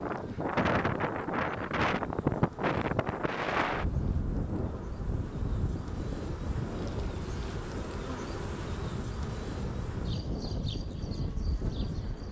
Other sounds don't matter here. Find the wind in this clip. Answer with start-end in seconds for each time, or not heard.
0.0-12.2.